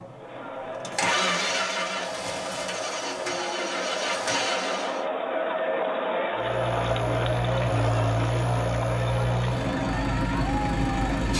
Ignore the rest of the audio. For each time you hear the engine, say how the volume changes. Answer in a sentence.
You can hear the engine from 0.0 to 5.0 s, getting quieter then louder; and from 6.3 to 11.3 s, at a steady volume.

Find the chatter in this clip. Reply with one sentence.
You can hear the chatter from 0.0 to 11.3 s.